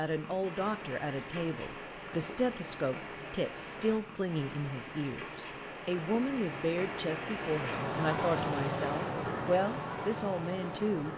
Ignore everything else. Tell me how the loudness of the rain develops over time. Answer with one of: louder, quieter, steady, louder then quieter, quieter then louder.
louder.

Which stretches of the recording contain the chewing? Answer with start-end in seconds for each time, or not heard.
not heard.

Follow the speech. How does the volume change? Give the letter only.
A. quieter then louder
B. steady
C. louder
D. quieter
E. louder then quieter
B.